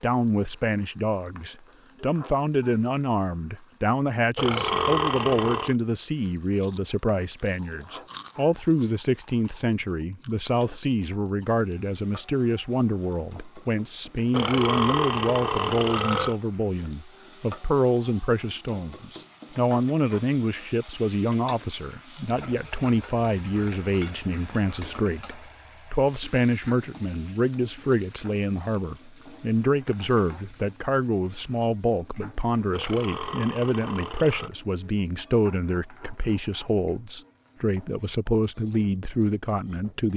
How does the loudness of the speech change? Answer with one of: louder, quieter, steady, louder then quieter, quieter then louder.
steady.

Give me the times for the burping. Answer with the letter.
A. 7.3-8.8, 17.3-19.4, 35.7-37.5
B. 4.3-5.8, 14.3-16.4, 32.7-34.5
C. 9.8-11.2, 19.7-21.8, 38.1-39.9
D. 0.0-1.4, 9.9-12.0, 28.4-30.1
B.